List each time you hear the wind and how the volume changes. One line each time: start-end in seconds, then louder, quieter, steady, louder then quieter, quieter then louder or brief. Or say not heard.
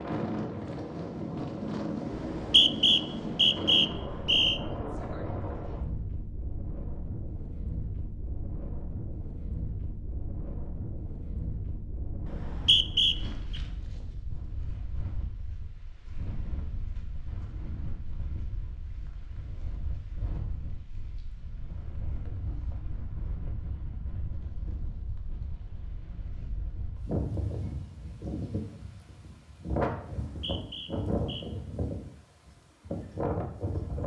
0.0-34.0 quieter then louder.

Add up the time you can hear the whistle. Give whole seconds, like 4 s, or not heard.
5 s.